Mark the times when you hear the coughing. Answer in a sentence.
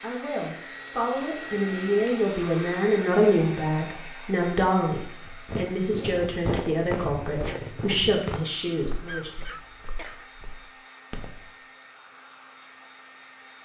The coughing can be heard from 9.1 to 10.3 s.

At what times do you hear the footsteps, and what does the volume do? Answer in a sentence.
You can hear the footsteps from 5.2 to 11.5 s, getting quieter.